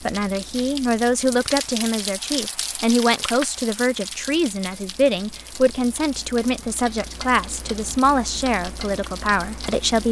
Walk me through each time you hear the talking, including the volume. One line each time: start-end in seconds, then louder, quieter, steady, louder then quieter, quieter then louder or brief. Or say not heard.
0.1-10.0 steady.